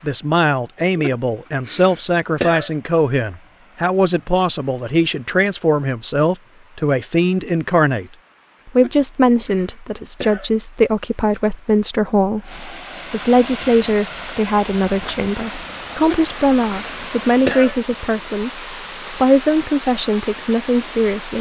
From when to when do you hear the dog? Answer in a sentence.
You can't hear the dog here.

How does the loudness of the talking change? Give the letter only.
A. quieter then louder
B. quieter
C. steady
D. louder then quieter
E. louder
C.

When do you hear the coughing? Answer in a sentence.
The coughing can be heard from 0.9 to 2.7 s, from 8.8 to 10.5 s and from 16.0 to 17.8 s.